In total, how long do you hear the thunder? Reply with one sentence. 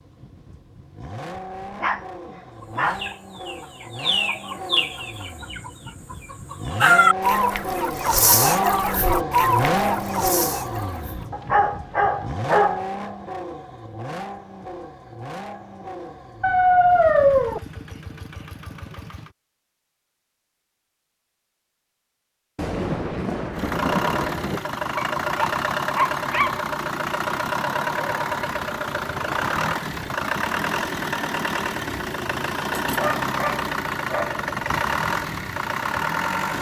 You can hear the thunder for 2 seconds altogether.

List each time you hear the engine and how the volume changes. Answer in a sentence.
You can hear the engine from 0.0 to 19.4 s, getting louder then quieter; and from 23.6 to 36.5 s, at a steady volume.